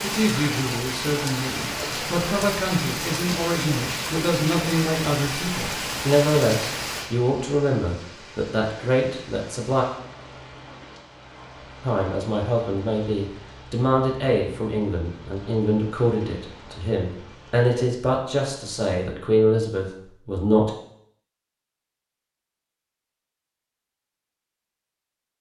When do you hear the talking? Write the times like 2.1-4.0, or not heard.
0.0-9.8, 11.8-20.7.